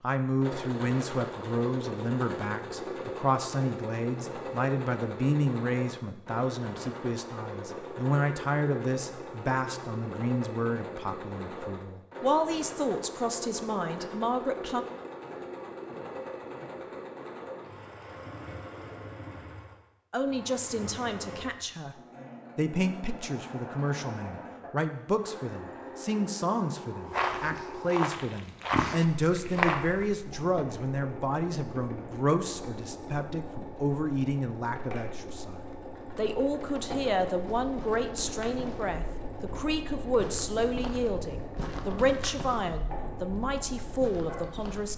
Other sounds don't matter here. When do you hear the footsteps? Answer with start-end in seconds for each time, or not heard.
27.1-30.1, 37.5-44.9.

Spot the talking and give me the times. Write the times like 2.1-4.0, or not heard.
0.0-14.8, 20.1-21.9, 22.6-44.9.